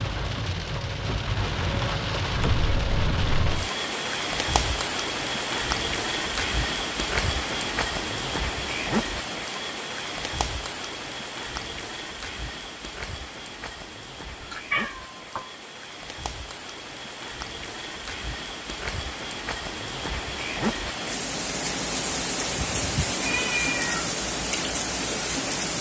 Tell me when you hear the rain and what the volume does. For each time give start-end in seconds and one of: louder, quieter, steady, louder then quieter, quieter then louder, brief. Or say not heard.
0.0-25.7 quieter then louder.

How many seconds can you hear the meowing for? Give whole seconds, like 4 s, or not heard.
4 s.